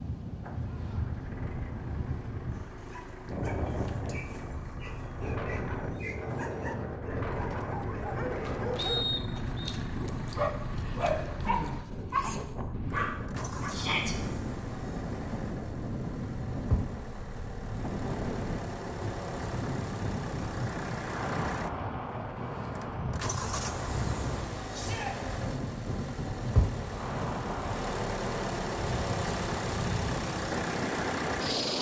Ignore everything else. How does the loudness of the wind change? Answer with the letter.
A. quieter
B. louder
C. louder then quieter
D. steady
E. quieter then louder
D.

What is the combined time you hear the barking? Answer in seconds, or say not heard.
11 s.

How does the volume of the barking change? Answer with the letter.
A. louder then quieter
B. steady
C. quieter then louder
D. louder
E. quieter
D.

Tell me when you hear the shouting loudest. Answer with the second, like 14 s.
14 s.